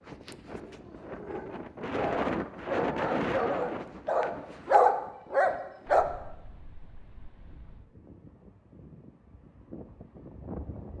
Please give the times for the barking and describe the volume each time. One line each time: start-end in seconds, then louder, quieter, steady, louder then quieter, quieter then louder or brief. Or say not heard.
0.6-6.0 louder.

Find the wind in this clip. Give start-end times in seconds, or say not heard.
0.0-10.9.